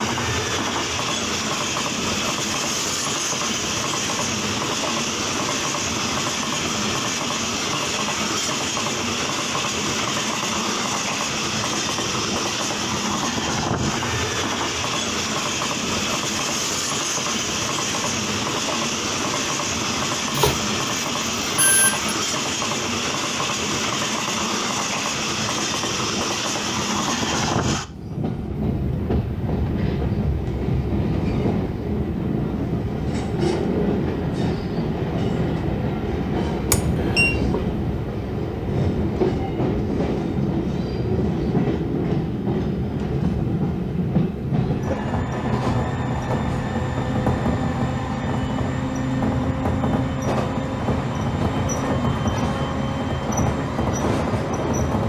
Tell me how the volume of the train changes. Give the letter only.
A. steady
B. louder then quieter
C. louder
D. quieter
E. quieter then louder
A.